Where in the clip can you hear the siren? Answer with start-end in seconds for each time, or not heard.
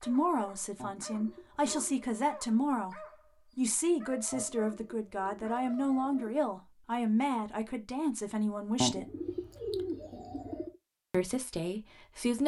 not heard.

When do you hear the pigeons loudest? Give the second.
9 s.